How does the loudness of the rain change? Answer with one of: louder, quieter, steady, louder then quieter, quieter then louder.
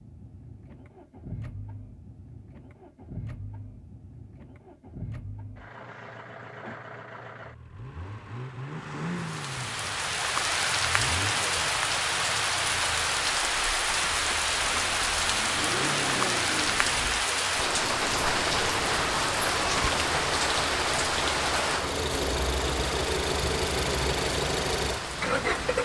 quieter.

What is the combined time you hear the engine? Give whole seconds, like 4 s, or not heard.
26 s.